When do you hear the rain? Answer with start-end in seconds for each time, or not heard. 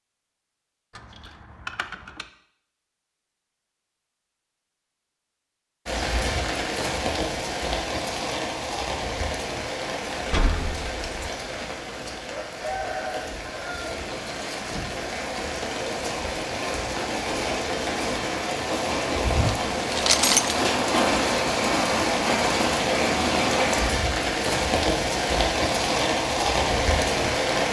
5.8-27.6.